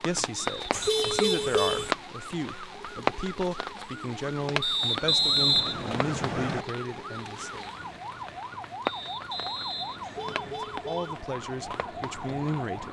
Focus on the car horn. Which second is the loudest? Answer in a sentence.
The volume of the car horn peaks at 1 second.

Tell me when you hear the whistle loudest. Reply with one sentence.
The volume of the whistle peaks at 5 seconds.